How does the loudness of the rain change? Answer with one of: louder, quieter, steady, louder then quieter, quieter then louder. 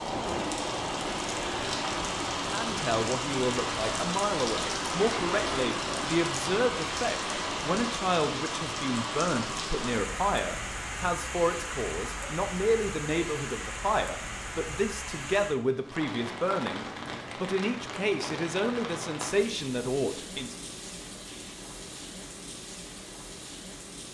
quieter.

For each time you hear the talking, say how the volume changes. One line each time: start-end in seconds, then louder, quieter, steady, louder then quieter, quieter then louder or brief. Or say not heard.
2.5-20.6 steady.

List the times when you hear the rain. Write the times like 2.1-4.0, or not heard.
0.0-24.0.